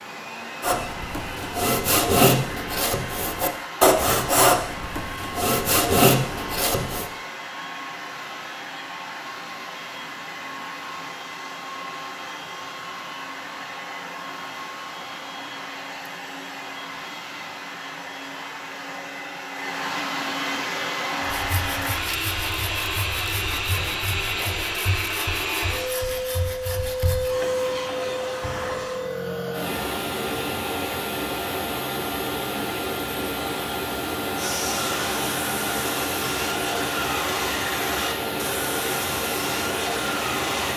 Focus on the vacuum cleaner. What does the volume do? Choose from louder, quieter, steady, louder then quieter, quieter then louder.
louder.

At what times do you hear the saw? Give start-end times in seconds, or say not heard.
0.6-7.0, 21.2-27.4, 34.4-40.7.